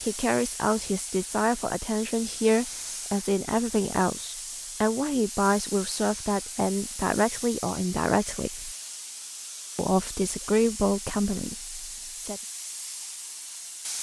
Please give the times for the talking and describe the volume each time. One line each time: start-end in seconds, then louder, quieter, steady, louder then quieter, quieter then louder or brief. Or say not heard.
0.0-8.8 steady
9.8-12.4 brief.